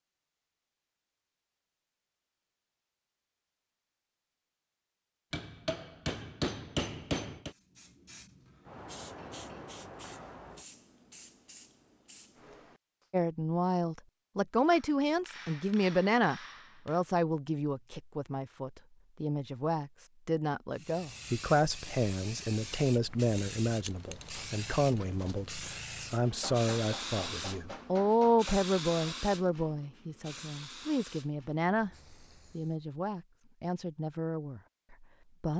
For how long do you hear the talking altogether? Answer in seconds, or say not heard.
22 s.